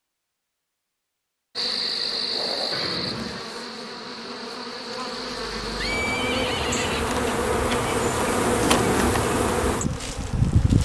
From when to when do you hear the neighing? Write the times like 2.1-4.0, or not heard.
2.7-3.5, 5.8-7.2.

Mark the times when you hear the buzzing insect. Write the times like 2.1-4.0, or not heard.
1.6-10.8.